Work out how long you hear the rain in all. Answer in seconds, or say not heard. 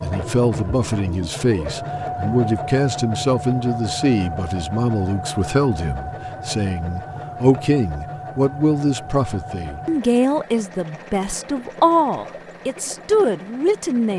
not heard.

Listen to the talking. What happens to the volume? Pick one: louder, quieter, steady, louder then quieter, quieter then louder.
steady.